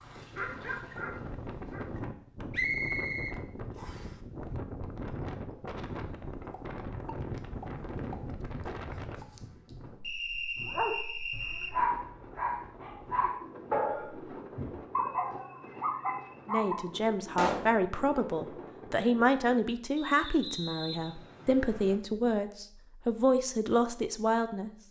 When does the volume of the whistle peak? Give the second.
3 s.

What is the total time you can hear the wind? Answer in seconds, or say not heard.
20 s.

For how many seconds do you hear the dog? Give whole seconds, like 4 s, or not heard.
8 s.